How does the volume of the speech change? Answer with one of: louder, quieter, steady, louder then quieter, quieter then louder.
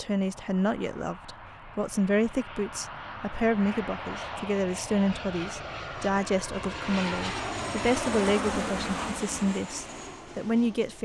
steady.